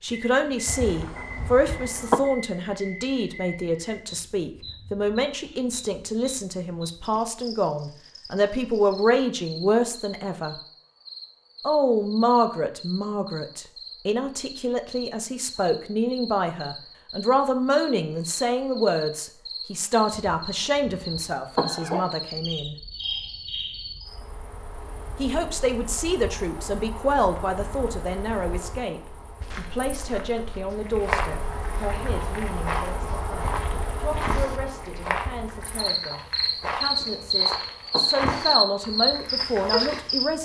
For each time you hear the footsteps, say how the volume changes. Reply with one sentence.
The footsteps can be heard from 29.4 to 40.1 s, at a steady volume.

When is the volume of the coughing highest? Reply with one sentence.
The loudest moment of the coughing is at 2 seconds.